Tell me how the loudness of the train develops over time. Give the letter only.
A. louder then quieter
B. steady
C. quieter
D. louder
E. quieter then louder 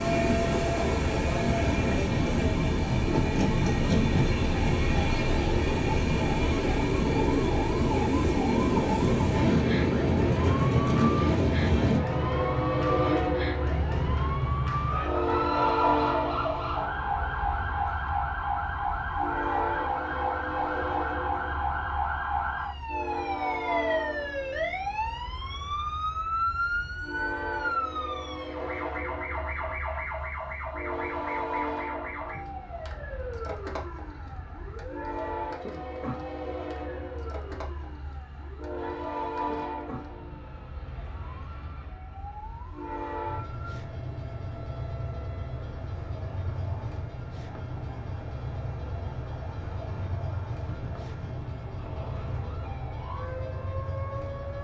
C.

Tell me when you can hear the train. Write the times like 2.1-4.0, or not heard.
0.0-54.5.